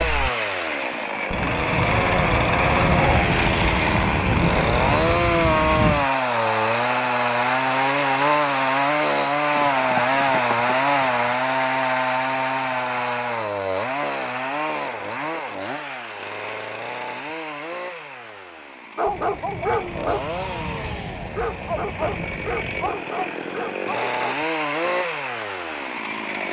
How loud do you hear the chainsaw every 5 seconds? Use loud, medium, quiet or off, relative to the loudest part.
loud, loud, loud, quiet, medium, medium.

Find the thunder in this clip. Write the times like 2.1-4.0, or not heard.
1.3-6.1, 19.1-23.1.